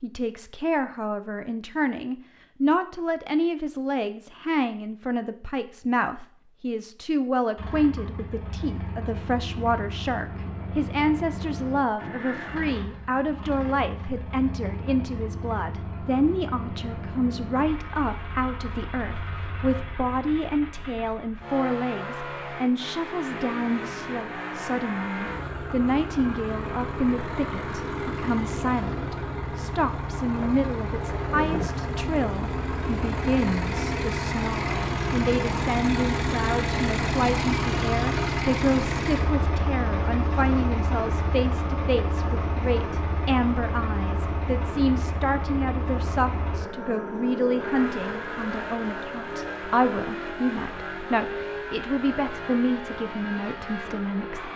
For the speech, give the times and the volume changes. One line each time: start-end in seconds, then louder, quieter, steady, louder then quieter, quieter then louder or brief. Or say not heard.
0.0-54.5 steady.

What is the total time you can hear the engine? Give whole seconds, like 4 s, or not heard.
47 s.